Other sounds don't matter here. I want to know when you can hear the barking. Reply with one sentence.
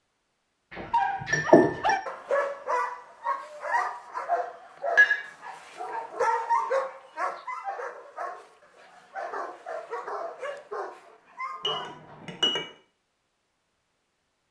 You can hear the barking from 0.8 to 12.0 s.